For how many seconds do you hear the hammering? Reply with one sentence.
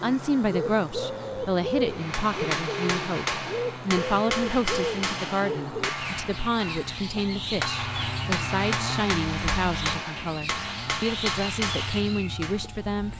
The hammering can be heard for 11 seconds in total.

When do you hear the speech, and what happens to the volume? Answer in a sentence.
The speech can be heard from 0.0 to 13.1 s, at a steady volume.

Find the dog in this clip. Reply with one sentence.
You can't hear the dog here.